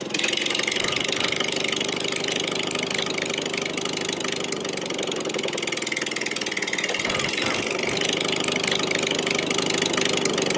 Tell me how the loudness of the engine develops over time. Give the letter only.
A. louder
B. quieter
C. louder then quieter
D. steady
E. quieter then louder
D.